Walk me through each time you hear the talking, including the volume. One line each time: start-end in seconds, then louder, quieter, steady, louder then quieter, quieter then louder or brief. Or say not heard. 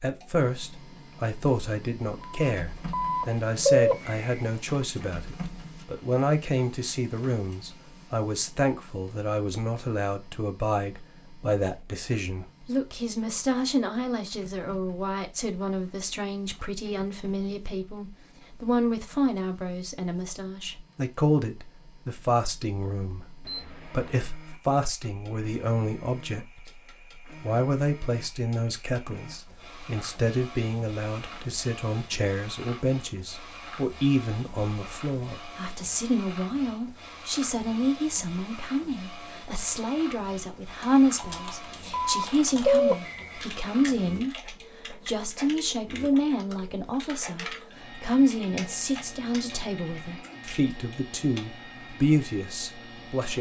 0.0-26.8 steady
27.4-53.3 steady.